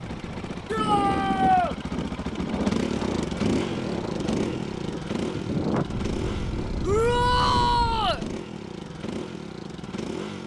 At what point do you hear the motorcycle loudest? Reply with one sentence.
The loudest moment of the motorcycle is at 3 seconds.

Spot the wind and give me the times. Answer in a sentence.
You can hear the wind from 0.0 to 8.2 s.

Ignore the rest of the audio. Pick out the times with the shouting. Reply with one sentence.
The shouting can be heard from 0.7 to 1.8 s and from 6.8 to 8.2 s.